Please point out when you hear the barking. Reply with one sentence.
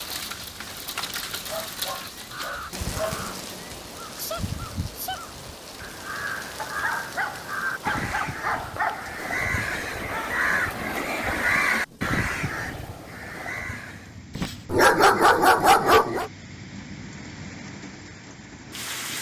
You can hear the barking from 1.4 to 3.1 s, from 6.5 to 9.2 s and from 14.3 to 16.3 s.